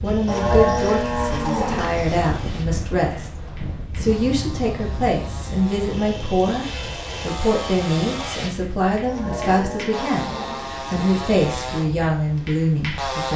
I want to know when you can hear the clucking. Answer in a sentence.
You can't hear the clucking here.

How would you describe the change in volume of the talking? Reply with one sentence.
The volume of the talking stays about the same.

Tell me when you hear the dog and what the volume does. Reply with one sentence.
You can't hear the dog here.